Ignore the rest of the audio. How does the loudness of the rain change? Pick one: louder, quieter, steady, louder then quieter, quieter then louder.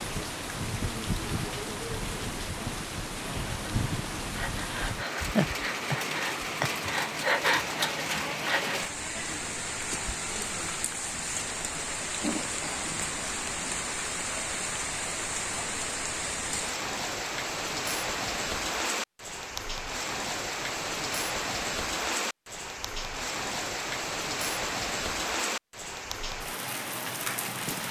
steady.